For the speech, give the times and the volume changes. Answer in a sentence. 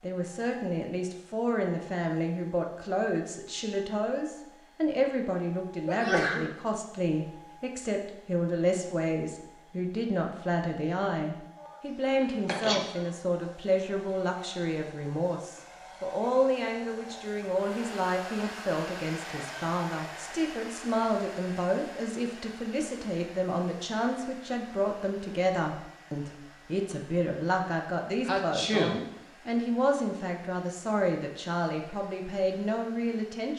The speech can be heard from 0.0 to 33.5 s, at a steady volume.